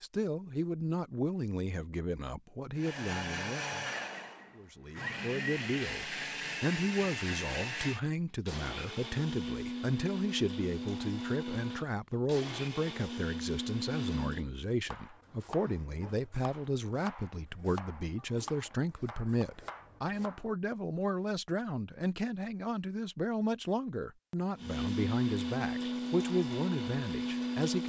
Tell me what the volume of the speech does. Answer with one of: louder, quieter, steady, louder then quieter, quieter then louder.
steady.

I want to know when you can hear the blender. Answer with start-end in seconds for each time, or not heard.
2.8-14.4, 24.6-27.8.